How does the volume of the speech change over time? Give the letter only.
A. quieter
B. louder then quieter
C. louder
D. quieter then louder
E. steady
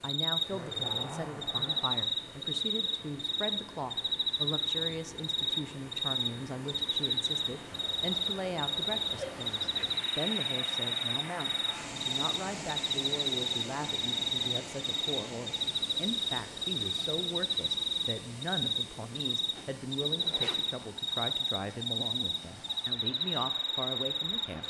E.